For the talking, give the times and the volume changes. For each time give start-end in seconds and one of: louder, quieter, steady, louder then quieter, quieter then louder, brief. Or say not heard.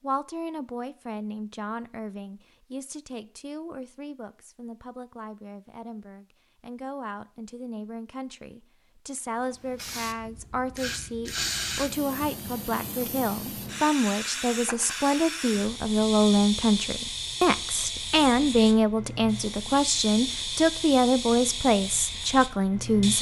0.0-23.1 louder.